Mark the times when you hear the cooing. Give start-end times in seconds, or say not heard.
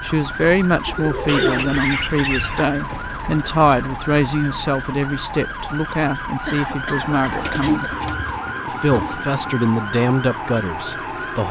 0.8-1.8, 7.0-9.2.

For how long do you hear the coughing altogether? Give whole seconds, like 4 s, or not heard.
3 s.